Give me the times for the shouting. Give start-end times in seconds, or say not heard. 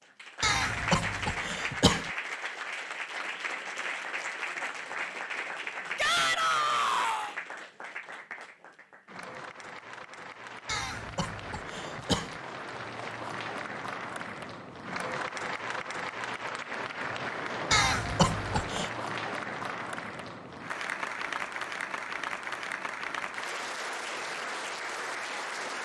6.0-7.3.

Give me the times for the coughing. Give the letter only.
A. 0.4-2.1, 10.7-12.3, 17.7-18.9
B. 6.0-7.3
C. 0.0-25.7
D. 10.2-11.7
A.